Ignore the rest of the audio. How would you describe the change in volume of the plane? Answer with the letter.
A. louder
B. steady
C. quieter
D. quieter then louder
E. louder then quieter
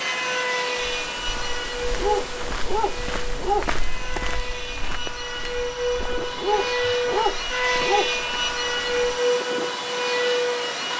D.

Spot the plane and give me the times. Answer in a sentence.
You can hear the plane from 0.0 to 10.9 s.